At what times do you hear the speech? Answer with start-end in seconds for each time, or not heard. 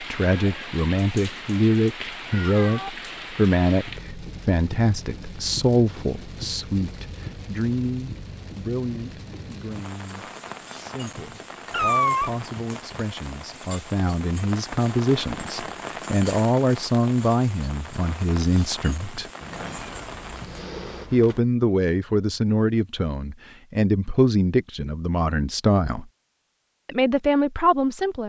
0.0-19.2, 21.1-26.1, 26.9-28.2.